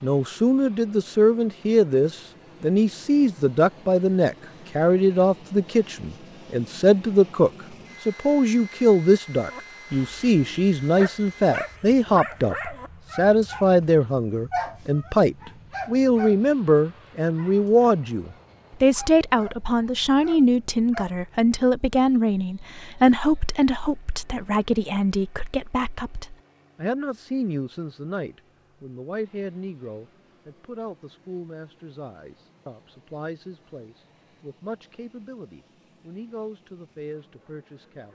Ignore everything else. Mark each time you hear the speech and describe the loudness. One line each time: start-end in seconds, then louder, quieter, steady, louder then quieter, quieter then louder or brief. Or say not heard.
0.0-38.1 quieter.